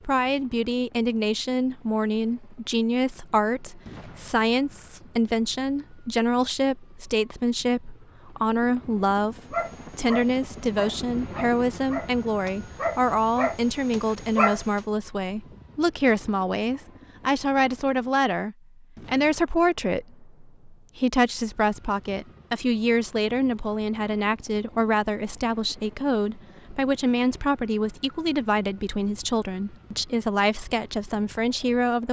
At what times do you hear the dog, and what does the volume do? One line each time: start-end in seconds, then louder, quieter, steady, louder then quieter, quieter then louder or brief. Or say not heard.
9.5-14.8 louder then quieter.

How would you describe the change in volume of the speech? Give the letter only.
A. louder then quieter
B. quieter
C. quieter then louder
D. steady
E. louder
D.